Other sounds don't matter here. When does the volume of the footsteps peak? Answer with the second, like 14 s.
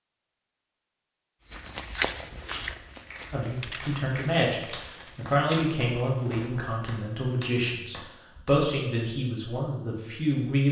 2 s.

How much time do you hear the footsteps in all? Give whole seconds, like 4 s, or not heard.
5 s.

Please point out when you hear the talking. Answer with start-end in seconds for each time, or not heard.
3.3-10.6.